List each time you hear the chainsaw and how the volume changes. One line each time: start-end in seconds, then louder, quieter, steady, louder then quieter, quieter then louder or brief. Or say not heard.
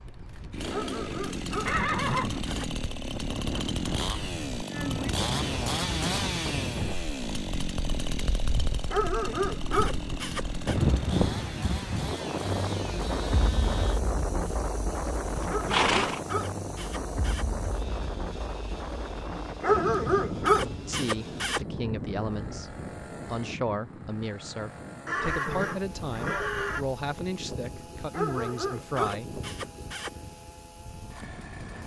0.0-31.8 quieter.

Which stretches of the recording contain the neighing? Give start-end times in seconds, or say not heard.
1.6-2.5, 15.3-16.2, 25.1-26.9.